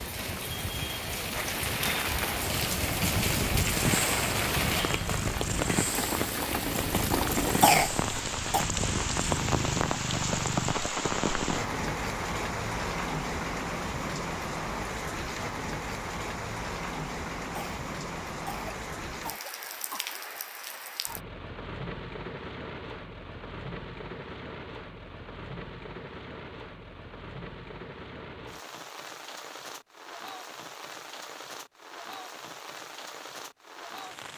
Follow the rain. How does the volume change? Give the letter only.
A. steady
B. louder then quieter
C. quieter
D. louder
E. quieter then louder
C.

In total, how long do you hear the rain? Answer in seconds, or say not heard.
34 s.